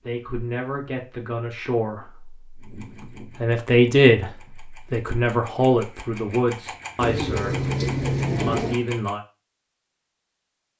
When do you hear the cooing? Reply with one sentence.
The cooing can be heard from 7.0 to 8.8 s.